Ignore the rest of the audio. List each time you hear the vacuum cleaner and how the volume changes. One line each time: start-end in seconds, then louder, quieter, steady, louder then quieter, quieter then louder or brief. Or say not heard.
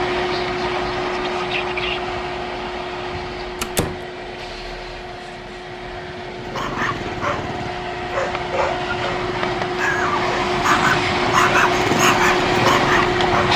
0.0-13.5 quieter then louder.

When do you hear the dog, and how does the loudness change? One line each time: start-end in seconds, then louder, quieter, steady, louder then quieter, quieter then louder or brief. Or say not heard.
6.3-13.5 louder.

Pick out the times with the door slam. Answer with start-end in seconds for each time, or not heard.
3.6-4.0.